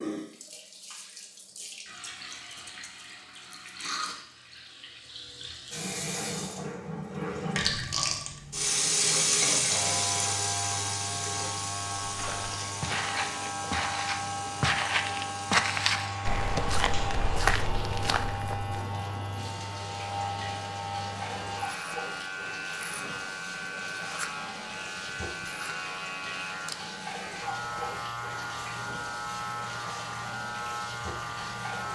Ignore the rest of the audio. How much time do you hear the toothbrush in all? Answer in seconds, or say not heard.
not heard.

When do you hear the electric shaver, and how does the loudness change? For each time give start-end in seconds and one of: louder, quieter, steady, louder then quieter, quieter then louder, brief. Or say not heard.
9.6-31.9 steady.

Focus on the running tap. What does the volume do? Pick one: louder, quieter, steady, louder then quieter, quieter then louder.
louder then quieter.